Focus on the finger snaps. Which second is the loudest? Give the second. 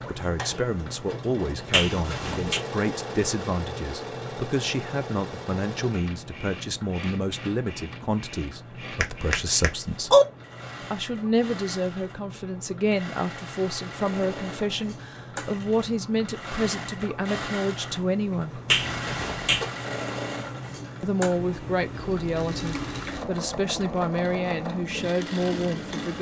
10 s.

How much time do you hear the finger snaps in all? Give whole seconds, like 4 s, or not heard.
3 s.